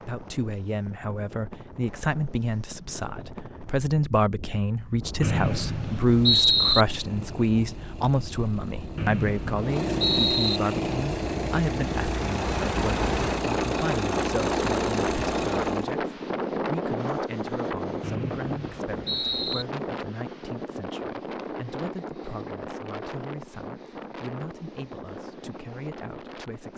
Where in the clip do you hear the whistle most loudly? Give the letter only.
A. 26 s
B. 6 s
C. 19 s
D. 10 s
B.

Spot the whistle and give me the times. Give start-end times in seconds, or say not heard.
5.2-6.8, 8.9-10.6, 18.0-19.6.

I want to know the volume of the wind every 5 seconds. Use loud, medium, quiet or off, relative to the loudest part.
quiet, medium, loud, loud, medium, medium.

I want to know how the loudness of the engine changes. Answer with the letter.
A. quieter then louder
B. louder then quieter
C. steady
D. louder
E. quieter
D.